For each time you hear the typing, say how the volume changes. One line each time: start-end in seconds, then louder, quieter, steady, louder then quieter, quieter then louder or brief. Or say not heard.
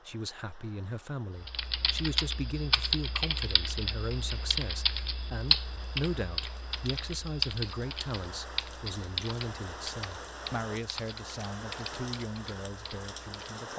1.4-13.7 quieter.